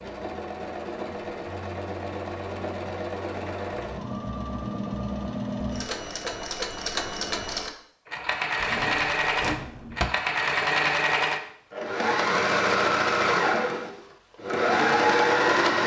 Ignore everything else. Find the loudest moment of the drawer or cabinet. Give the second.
10 s.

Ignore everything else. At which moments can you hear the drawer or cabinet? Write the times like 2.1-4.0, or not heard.
8.6-10.1.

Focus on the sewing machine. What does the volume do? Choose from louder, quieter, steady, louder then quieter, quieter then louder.
louder.